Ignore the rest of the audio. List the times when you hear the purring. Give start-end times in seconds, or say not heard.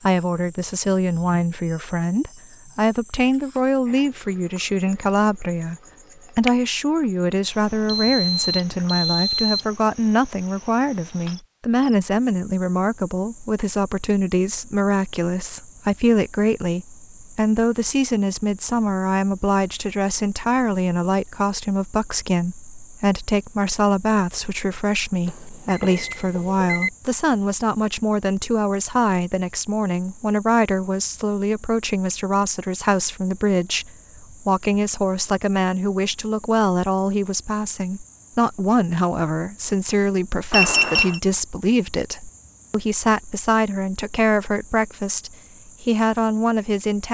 not heard.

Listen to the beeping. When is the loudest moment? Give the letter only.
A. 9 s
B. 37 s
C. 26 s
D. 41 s
D.